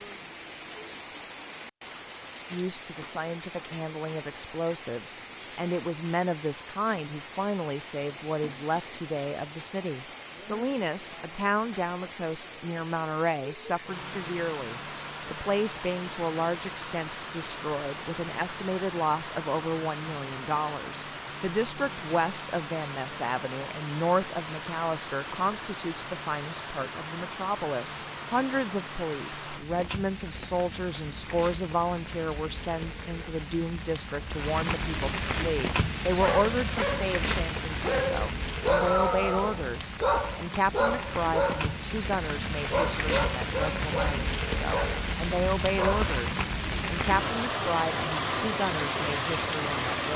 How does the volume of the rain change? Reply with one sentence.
The volume of the rain goes up.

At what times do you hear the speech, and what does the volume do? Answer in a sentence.
You can hear the speech from 2.5 to 50.1 s, at a steady volume.